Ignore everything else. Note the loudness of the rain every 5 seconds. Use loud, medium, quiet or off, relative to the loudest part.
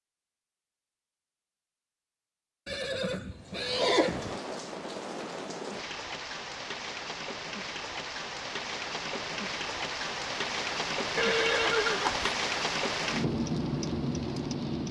medium, medium, loud.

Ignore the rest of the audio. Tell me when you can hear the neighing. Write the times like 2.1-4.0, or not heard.
2.6-4.4, 11.2-12.3.